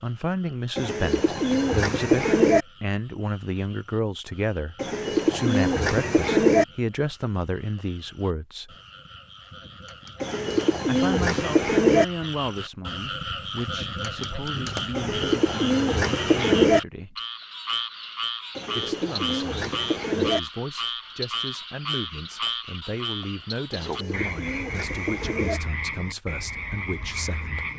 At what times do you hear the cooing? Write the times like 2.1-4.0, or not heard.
0.8-2.6, 4.8-6.7, 10.2-12.1, 14.9-16.8, 18.6-20.4, 23.7-25.6.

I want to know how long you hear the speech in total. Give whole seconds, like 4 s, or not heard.
24 s.